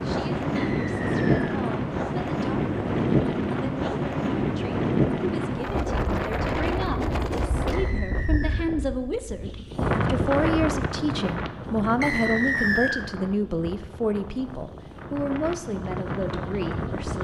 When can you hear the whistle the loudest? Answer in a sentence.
The loudest moment of the whistle is at 13 seconds.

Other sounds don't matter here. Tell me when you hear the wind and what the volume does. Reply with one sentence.
You can hear the wind from 0.0 to 17.1 s, getting quieter.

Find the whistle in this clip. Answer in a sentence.
The whistle can be heard from 0.6 to 1.6 s, from 7.7 to 8.7 s and from 12.0 to 13.1 s.